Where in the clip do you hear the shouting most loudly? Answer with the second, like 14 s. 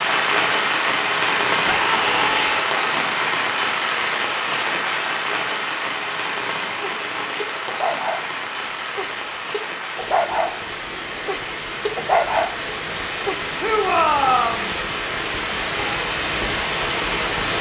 14 s.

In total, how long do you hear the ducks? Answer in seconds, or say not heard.
not heard.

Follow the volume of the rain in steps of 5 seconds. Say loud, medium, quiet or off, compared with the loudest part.
loud, medium, medium, loud.